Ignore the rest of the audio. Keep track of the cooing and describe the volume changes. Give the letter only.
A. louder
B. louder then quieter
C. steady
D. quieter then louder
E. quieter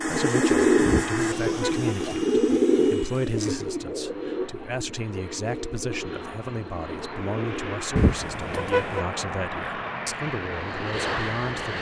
E.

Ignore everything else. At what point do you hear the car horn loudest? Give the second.
8 s.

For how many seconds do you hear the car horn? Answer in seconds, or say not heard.
2 s.